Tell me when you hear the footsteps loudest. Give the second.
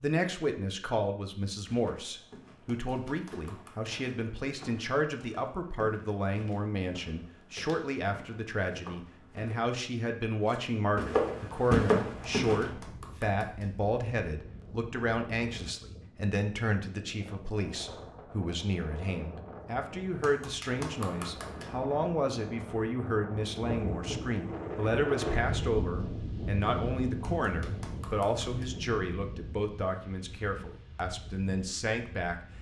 12 s.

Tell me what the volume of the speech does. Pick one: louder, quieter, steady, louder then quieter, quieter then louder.
steady.